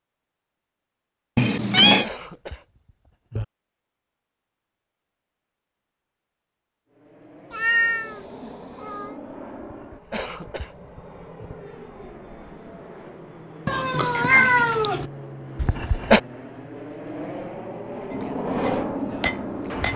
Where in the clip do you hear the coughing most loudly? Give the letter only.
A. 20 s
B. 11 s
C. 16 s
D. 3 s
C.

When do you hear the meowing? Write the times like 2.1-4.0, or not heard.
1.4-2.0, 7.5-9.2, 13.7-15.1.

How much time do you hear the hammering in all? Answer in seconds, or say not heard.
2 s.